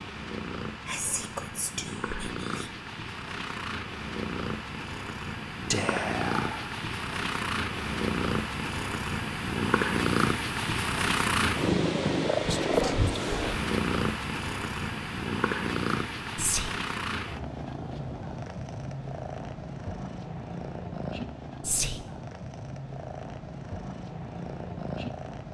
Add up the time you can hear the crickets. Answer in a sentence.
You can't hear the crickets here.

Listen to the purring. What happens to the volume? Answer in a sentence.
The loudness of the purring goes up, then down.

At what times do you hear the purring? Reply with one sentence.
You can hear the purring from 0.0 to 25.4 s.